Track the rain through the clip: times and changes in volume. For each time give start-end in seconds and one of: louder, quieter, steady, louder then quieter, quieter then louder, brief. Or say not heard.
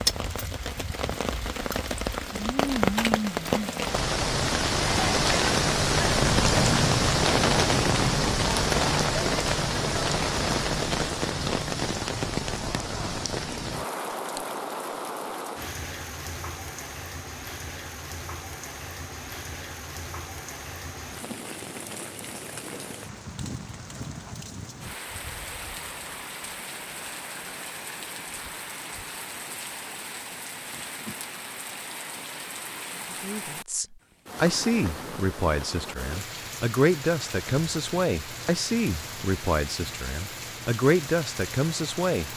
0.0-42.3 quieter.